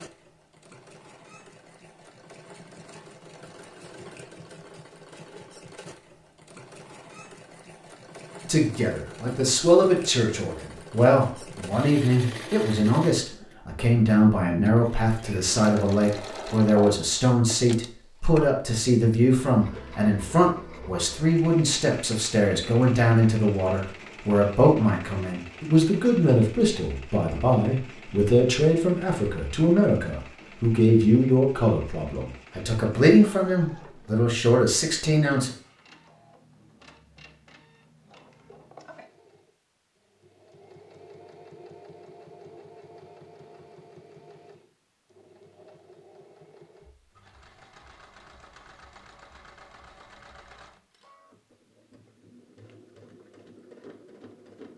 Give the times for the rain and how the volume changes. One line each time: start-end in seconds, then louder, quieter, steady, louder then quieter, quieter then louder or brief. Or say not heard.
not heard.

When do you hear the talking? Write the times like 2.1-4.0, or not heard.
8.4-35.5.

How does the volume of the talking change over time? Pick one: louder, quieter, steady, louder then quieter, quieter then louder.
steady.